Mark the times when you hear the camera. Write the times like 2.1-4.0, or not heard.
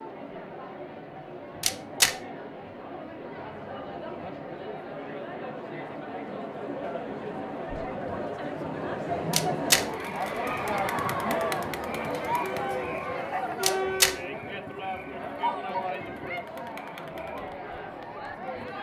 1.6-2.1, 9.3-9.8, 13.6-14.2.